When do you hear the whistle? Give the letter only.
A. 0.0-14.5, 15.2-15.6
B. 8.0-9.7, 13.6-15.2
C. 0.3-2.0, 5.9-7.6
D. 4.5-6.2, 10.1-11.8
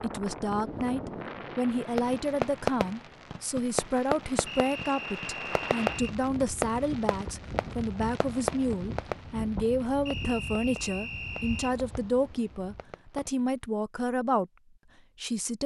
D.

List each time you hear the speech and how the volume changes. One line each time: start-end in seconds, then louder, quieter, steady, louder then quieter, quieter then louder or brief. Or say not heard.
0.0-14.5 steady
15.2-15.6 brief.